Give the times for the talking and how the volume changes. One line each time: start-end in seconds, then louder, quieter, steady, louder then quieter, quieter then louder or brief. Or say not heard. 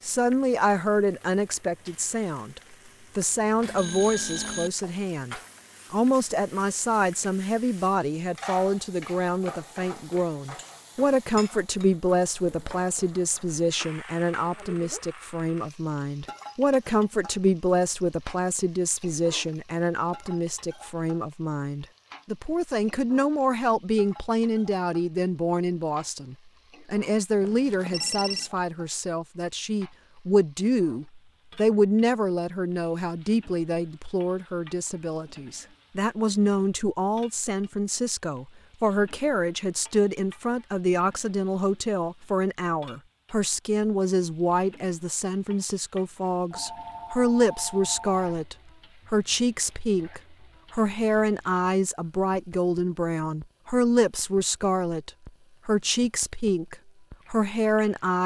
0.0-58.2 steady.